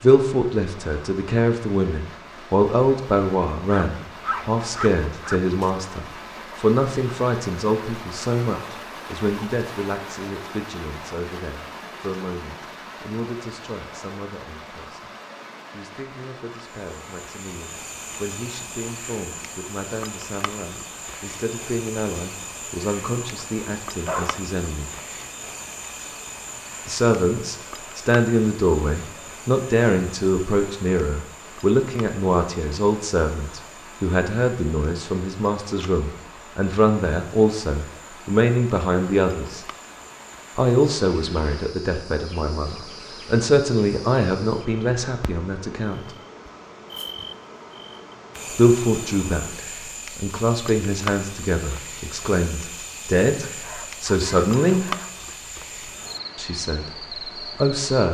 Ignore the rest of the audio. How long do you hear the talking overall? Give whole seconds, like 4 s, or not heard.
51 s.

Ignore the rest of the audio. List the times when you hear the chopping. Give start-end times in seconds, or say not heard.
not heard.